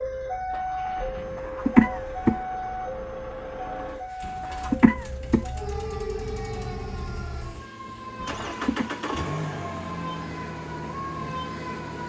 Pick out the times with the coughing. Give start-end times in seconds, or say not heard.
1.2-2.4, 4.2-5.4, 8.2-8.8.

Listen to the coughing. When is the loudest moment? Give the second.
2 s.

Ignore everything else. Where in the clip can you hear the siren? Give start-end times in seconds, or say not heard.
0.0-12.0.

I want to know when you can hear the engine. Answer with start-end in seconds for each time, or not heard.
0.2-12.0.